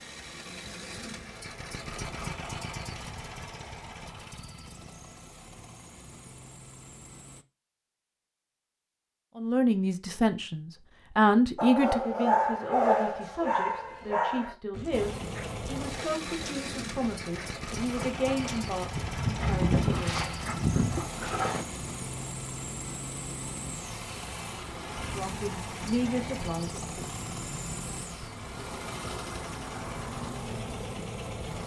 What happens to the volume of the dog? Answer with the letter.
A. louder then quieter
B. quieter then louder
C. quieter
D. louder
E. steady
B.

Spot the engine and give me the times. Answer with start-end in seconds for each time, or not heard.
0.0-7.5, 14.9-31.6.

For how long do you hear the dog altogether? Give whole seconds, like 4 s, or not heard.
10 s.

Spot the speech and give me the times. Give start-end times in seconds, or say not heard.
9.3-20.2, 25.0-27.2.